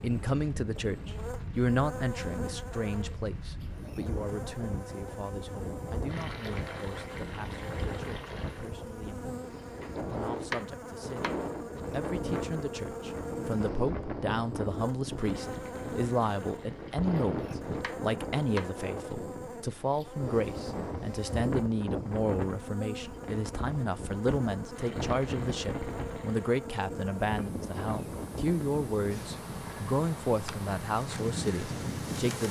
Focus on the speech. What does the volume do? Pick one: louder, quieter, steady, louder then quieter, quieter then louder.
quieter then louder.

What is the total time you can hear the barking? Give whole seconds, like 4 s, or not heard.
not heard.